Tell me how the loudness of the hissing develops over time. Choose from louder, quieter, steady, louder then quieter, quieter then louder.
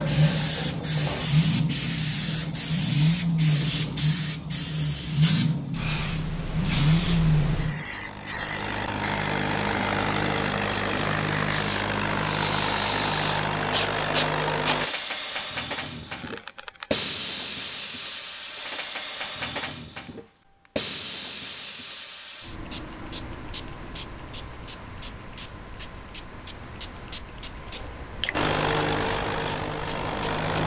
quieter.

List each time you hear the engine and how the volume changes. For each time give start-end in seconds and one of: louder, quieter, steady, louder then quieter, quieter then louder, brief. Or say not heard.
0.0-14.9 steady
28.3-30.6 brief.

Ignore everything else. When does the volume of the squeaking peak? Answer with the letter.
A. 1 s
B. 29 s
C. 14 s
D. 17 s
A.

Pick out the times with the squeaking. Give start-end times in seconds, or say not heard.
0.5-1.2, 15.8-17.0, 27.7-28.4.